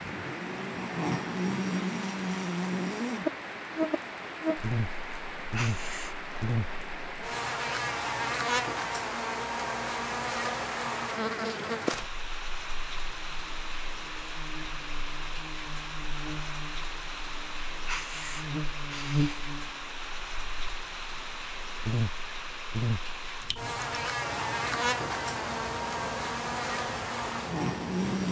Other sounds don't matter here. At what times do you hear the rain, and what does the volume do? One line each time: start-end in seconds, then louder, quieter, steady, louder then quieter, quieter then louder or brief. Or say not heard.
0.0-28.2 steady.